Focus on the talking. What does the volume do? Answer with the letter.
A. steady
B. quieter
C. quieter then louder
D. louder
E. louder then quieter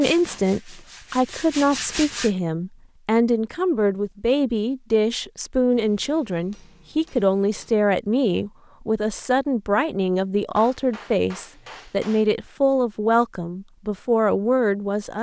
A.